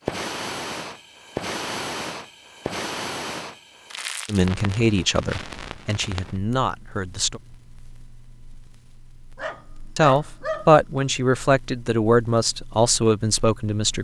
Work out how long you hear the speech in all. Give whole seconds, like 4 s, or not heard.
7 s.